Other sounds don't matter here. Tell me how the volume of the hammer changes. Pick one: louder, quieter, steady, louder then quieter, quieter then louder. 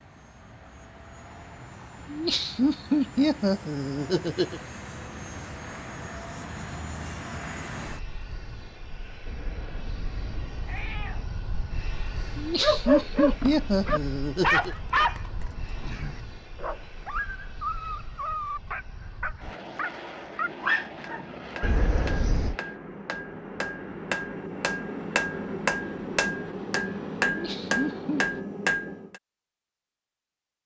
louder.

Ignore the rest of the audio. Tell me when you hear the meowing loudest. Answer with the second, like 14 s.
22 s.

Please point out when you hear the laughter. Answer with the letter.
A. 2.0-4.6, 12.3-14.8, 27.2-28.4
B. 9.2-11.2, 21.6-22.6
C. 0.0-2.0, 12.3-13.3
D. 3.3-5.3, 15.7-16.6
A.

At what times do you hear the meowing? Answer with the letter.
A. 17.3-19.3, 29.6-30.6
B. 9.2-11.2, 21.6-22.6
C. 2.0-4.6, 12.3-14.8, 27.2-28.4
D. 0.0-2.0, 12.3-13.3
B.